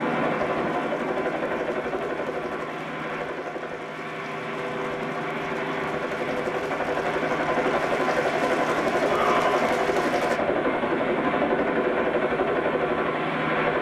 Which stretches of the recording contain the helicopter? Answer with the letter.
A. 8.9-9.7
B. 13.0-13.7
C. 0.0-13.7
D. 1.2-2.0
C.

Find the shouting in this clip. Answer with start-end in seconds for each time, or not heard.
8.9-9.7.